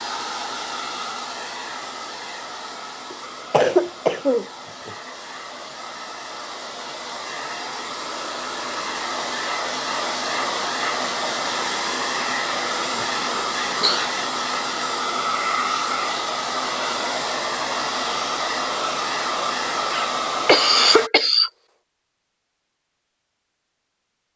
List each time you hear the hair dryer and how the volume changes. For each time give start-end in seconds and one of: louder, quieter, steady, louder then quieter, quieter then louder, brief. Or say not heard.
0.0-21.1 louder.